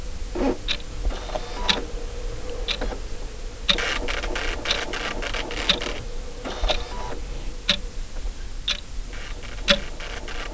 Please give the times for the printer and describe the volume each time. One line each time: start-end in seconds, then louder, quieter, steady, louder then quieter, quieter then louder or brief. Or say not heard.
0.0-10.4 quieter.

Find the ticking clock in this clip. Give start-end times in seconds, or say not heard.
0.0-10.4.